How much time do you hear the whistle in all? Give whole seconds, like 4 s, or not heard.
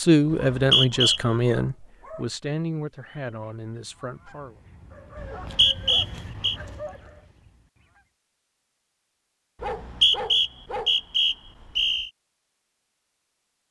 5 s.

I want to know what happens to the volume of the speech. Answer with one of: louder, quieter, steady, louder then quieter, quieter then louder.
quieter.